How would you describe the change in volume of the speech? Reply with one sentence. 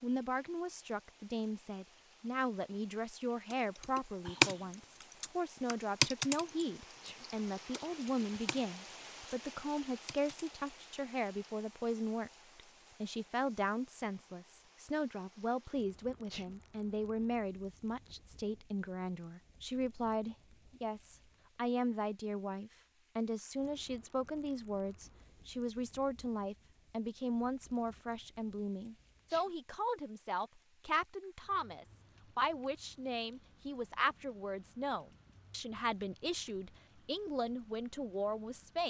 The volume of the speech stays about the same.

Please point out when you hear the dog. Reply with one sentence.
You can't hear the dog here.